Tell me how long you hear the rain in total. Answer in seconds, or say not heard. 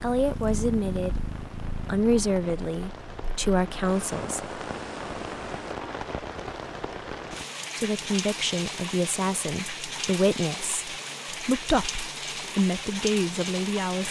14 s.